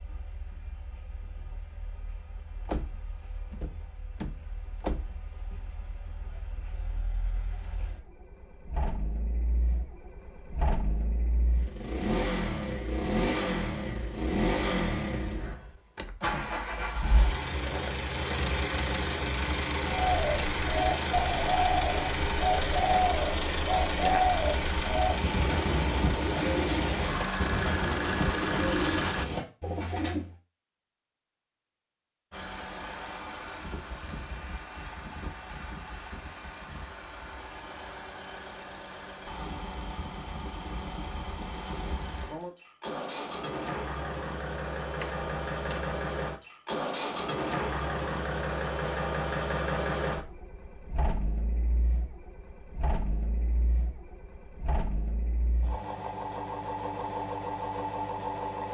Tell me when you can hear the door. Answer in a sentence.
You can hear the door from 2.6 to 5.2 s and from 45.0 to 46.0 s.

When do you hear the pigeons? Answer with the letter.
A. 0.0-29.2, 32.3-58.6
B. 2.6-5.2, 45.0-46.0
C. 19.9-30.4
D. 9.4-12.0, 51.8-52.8
C.